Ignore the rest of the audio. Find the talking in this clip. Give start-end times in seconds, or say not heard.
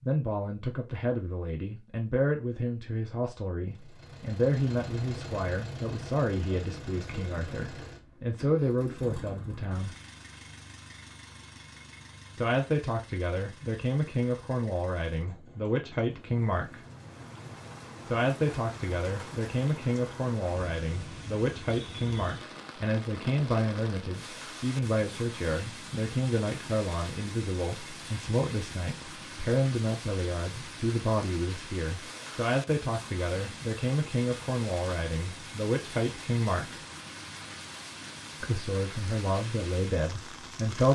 0.0-9.9, 12.3-16.8, 18.1-36.8, 38.4-40.8.